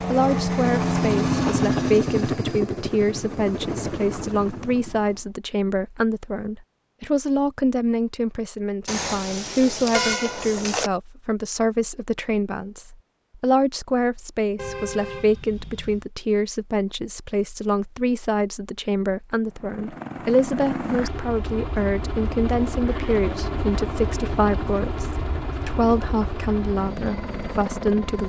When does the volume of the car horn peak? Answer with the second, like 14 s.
10 s.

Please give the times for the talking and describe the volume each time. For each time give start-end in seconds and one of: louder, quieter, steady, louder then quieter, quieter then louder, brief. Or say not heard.
0.1-28.2 steady.